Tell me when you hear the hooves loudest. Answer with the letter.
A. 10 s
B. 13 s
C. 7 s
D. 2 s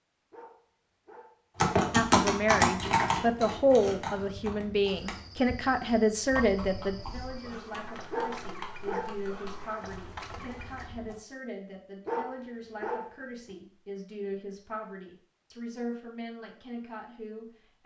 D.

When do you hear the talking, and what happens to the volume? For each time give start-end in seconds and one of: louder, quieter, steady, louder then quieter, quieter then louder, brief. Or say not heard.
1.9-17.8 quieter.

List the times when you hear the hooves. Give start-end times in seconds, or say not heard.
1.6-11.2.